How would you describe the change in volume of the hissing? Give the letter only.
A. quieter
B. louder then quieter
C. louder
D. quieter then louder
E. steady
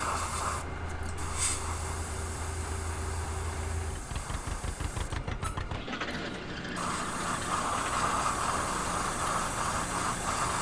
D.